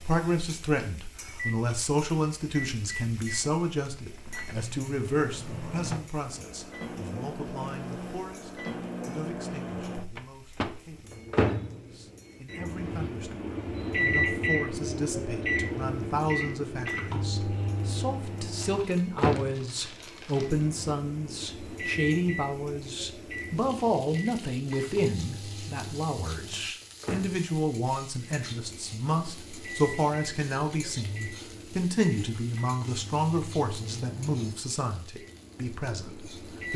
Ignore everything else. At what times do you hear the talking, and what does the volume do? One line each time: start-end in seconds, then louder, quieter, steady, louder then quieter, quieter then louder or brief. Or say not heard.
0.0-36.7 quieter then louder.